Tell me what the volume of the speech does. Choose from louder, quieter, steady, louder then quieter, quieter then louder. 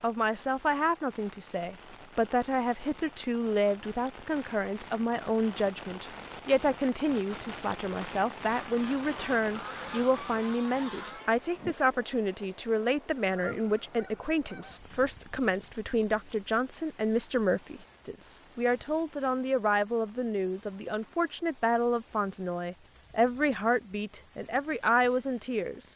steady.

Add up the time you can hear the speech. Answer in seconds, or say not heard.
26 s.